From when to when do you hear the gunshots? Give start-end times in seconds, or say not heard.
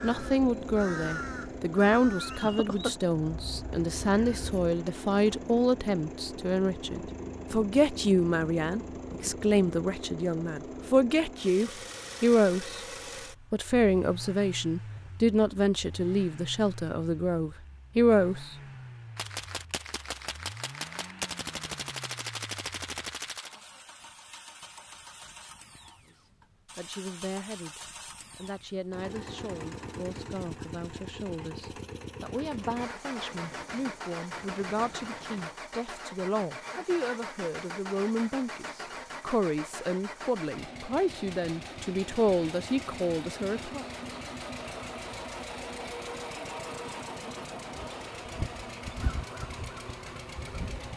19.1-23.6, 32.4-35.6.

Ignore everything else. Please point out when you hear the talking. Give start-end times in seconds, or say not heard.
0.0-12.8, 13.5-18.6, 26.8-43.8.